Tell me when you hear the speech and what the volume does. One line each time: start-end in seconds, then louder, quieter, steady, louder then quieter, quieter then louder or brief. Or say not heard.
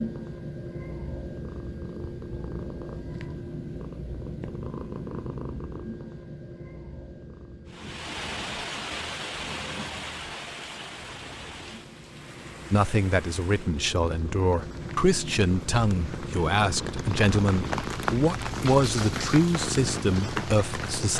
12.7-21.1 steady.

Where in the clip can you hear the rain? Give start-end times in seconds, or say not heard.
7.7-21.1.